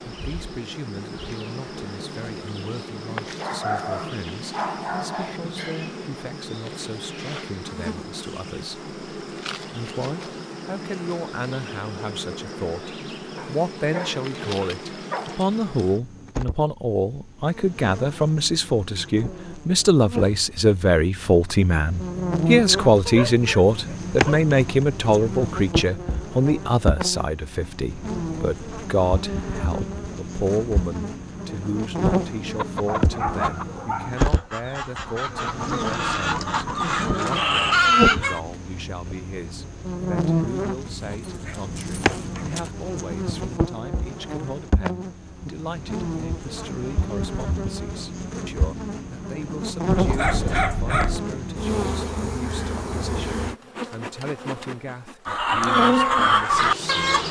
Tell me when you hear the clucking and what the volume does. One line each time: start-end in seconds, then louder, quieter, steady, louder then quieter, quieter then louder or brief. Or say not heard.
32.5-38.4 quieter then louder
55.2-57.2 brief.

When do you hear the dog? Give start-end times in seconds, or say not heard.
3.4-5.4, 13.3-15.4, 23.1-24.5, 32.9-34.3, 40.9-42.7, 50.0-51.2.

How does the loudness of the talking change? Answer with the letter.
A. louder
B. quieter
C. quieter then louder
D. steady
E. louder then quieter
E.